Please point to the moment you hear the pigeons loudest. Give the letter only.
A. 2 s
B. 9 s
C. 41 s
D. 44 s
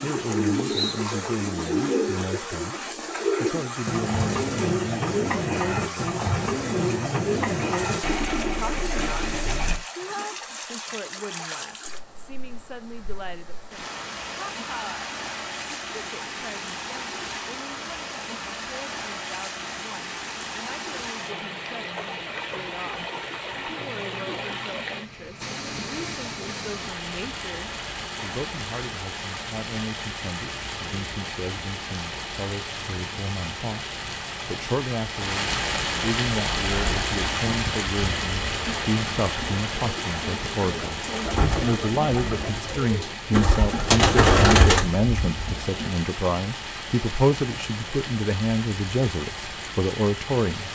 D.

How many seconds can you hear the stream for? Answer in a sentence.
The stream can be heard for 51 seconds in total.